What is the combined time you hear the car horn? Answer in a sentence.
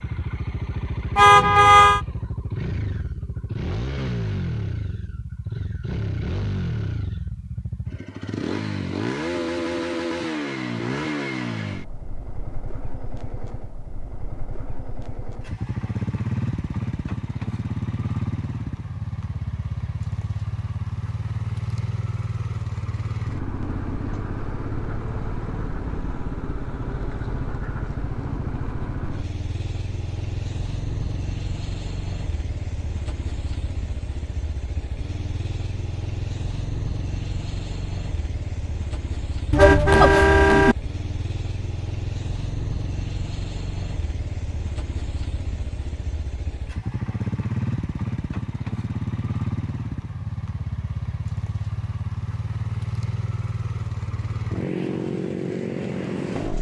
You can hear the car horn for 2 seconds altogether.